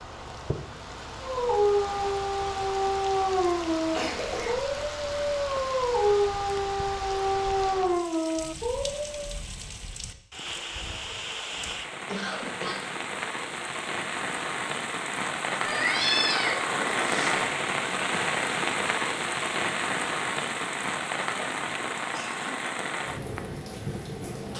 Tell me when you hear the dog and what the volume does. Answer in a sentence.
You can hear the dog from 1.2 to 9.4 s, at a steady volume.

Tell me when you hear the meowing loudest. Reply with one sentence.
The loudest moment of the meowing is at 16 seconds.